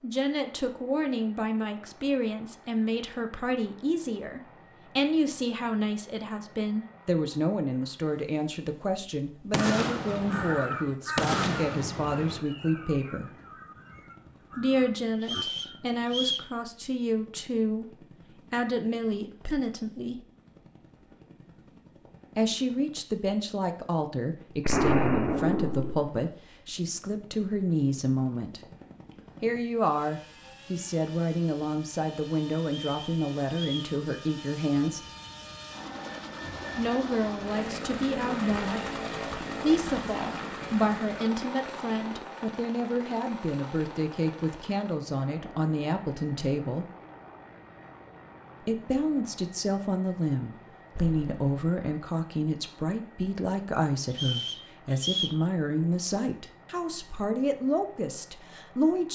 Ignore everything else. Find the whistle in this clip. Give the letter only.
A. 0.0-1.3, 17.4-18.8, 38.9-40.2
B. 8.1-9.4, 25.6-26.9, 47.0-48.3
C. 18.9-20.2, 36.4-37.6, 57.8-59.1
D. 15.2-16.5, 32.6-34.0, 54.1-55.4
D.